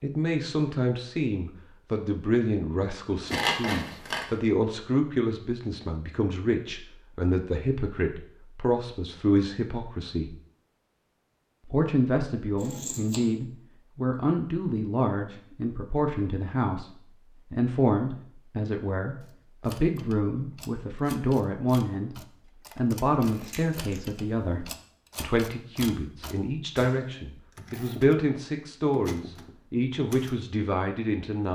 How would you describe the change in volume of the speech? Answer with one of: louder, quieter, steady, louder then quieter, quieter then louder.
steady.